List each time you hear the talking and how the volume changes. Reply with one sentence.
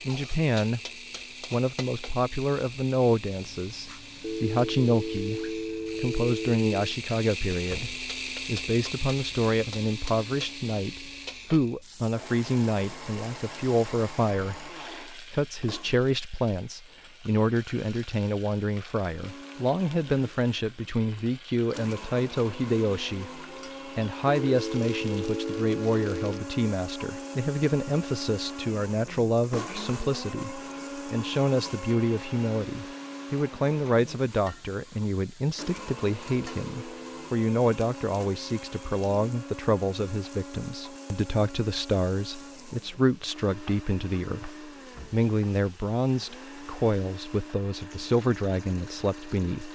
The talking can be heard briefly from 0.1 to 0.8 s; and from 1.5 to 49.6 s, at a steady volume.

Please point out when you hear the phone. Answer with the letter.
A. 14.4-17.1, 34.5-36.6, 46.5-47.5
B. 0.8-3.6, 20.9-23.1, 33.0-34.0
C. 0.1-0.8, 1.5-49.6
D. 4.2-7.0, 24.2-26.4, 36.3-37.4
D.